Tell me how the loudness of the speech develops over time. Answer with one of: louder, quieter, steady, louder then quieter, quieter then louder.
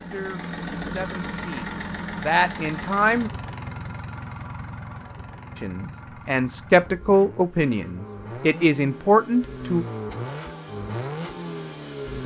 louder.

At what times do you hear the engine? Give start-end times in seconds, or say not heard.
0.0-12.2.